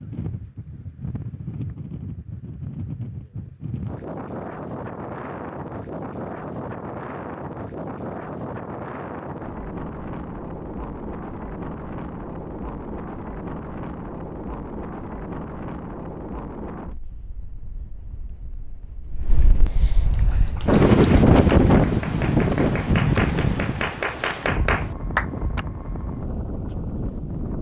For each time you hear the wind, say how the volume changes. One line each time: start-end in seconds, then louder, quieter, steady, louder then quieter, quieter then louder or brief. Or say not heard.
0.0-27.5 louder.